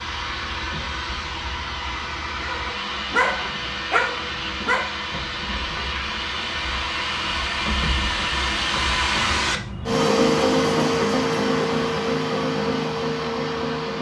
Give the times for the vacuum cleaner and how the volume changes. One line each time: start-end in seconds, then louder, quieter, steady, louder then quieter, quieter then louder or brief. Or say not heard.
0.0-13.9 louder.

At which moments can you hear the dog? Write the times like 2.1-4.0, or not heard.
2.4-5.0.